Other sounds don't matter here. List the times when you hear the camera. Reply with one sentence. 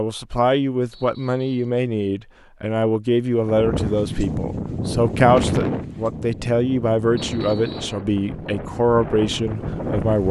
The camera can't be heard in this clip.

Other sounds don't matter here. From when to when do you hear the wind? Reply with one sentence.
The wind can be heard from 3.5 to 10.2 s.